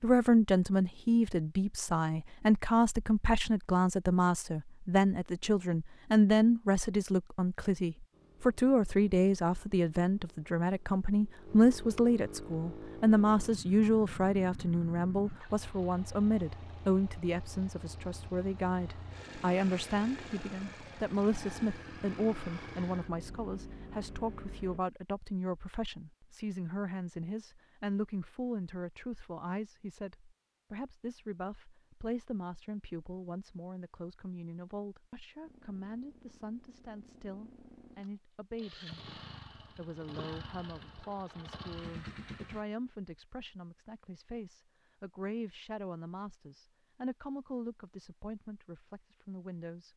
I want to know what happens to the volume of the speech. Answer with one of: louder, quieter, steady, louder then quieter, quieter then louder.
quieter.